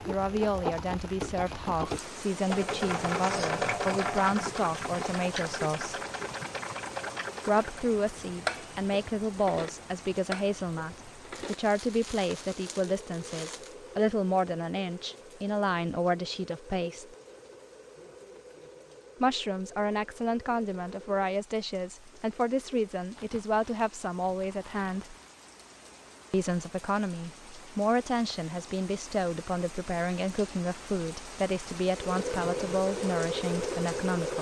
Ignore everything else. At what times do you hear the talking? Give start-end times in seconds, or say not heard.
0.1-6.0, 7.5-17.1, 19.2-25.1, 26.3-34.3.